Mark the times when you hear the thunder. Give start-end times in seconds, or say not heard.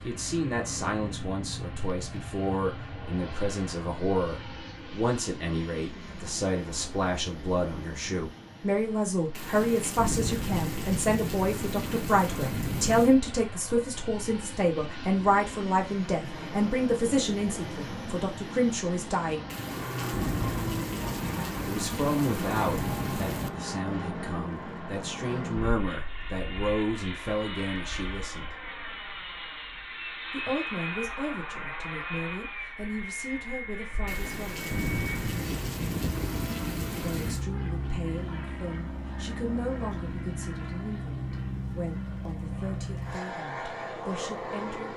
9.3-13.2, 19.4-23.5, 34.0-37.5.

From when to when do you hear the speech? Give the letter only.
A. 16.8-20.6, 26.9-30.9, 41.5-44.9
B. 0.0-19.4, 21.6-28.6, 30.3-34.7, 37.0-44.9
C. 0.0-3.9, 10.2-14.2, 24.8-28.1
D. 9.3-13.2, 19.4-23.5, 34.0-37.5
B.